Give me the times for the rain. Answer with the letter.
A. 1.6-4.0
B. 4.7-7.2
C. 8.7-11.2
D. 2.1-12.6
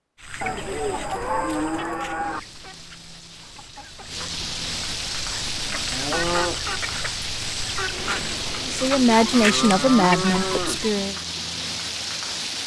D.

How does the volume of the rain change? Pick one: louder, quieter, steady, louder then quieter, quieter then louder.
louder.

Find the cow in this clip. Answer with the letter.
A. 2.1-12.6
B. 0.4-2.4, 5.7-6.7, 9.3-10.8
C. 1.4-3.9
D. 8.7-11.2
B.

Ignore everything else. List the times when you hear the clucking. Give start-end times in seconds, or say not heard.
0.2-10.7.